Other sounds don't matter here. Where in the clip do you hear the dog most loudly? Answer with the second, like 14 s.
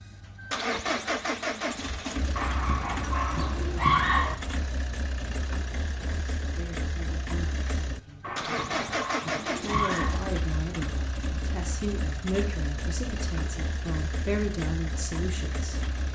4 s.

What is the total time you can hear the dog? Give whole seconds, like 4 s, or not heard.
4 s.